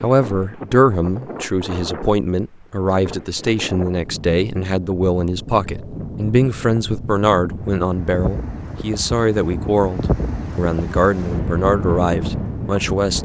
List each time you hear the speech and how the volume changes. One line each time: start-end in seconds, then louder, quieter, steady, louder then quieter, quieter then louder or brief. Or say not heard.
0.0-13.1 steady.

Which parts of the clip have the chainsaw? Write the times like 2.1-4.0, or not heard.
not heard.